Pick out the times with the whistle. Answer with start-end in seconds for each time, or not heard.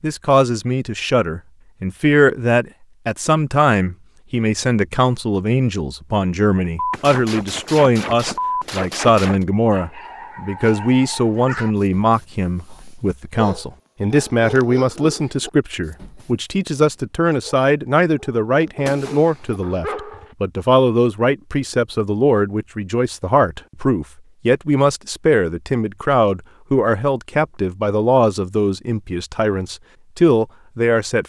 not heard.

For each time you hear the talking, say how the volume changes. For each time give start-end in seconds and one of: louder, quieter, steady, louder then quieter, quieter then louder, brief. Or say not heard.
0.0-31.2 steady.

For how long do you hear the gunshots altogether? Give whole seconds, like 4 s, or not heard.
4 s.